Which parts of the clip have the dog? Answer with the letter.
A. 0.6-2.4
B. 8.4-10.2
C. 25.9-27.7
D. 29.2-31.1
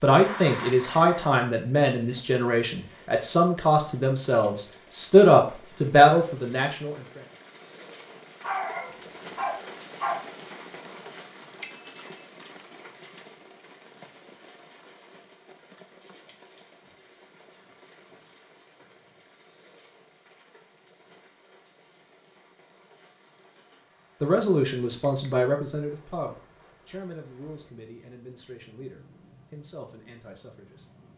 B.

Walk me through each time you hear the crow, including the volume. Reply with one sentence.
You can't hear the crow here.